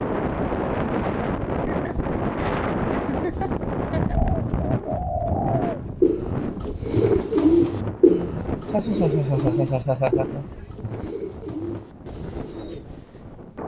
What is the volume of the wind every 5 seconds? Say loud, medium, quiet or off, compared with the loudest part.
loud, medium, quiet.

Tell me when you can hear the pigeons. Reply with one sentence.
The pigeons can be heard from 4.1 to 12.8 s.